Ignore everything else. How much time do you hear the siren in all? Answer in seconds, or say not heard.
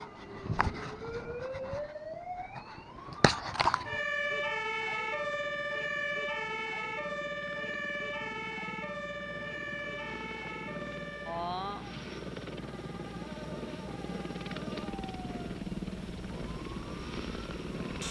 18 s.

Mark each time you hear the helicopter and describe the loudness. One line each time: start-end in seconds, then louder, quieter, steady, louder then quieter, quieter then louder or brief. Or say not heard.
0.0-18.0 louder.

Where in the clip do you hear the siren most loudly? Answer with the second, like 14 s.
4 s.